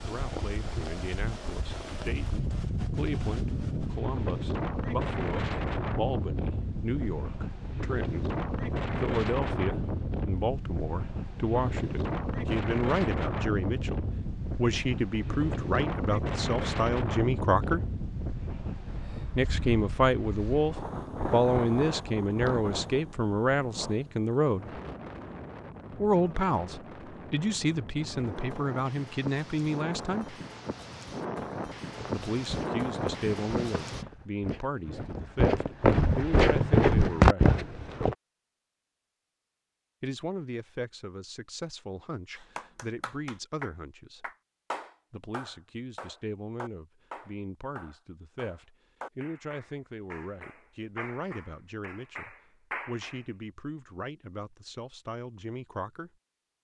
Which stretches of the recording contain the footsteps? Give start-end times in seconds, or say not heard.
31.9-38.1.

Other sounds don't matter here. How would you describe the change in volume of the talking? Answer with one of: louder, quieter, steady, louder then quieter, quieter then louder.
louder then quieter.